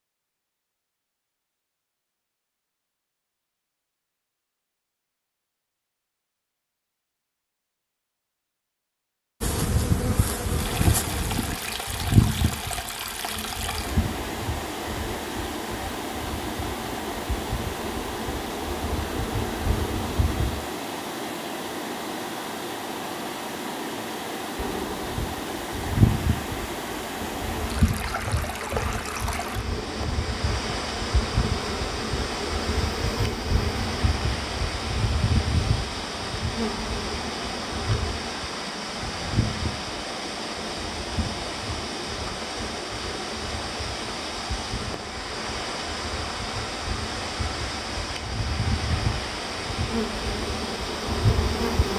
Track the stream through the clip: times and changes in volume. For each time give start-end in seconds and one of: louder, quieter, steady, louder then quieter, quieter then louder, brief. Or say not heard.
10.4-51.9 steady.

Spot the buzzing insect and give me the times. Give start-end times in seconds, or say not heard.
9.4-20.6, 24.6-51.9.